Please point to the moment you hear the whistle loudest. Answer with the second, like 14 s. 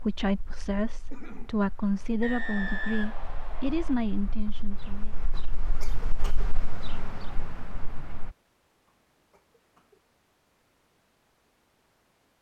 3 s.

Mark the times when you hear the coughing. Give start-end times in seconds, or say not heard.
1.1-1.6, 5.6-6.5, 8.8-10.0.